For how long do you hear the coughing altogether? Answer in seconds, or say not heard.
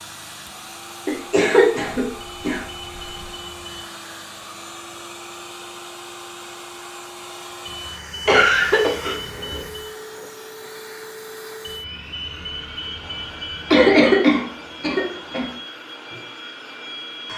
5 s.